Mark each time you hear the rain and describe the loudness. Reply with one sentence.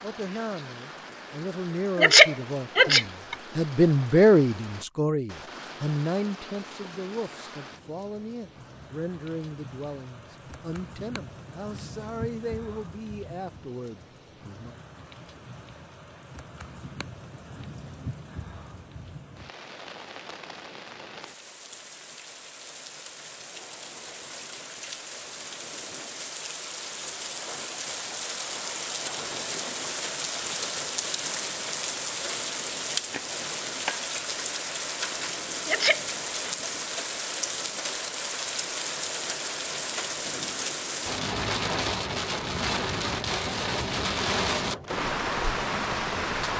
The rain can be heard from 0.0 to 46.5 s, getting louder.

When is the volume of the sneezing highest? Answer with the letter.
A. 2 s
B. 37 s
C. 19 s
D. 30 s
A.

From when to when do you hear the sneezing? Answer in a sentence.
The sneezing can be heard from 1.9 to 3.4 s and from 35.6 to 36.5 s.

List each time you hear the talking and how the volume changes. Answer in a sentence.
You can hear the talking from 0.0 to 14.8 s, getting louder then quieter.